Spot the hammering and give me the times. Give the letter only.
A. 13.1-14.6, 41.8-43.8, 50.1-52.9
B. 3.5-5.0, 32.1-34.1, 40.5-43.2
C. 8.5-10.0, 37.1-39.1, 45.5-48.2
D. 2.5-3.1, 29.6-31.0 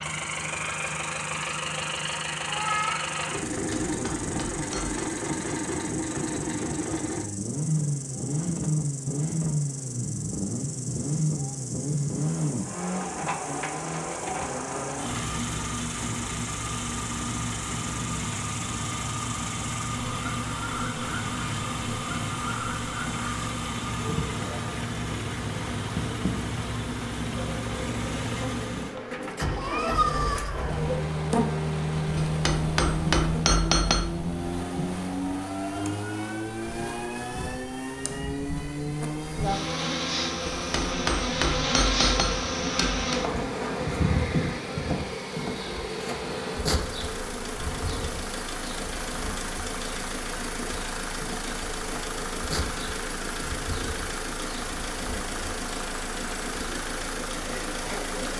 B.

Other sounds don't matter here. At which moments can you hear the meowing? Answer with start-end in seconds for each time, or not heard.
2.5-3.1, 29.6-31.0.